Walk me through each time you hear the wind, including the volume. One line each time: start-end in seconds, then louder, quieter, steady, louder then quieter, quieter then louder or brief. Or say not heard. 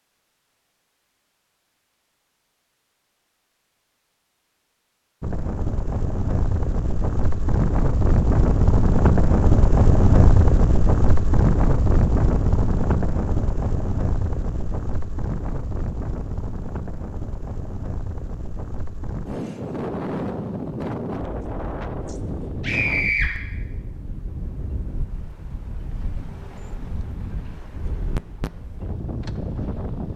5.2-30.1 quieter.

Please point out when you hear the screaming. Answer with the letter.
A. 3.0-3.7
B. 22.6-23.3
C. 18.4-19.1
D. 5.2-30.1
B.